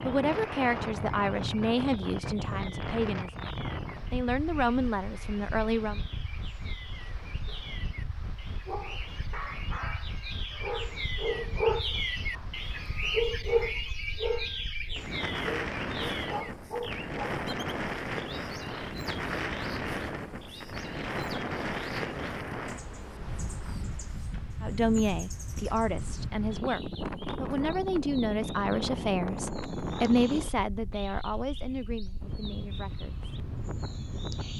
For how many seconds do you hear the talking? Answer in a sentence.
The talking can be heard for 15 seconds in total.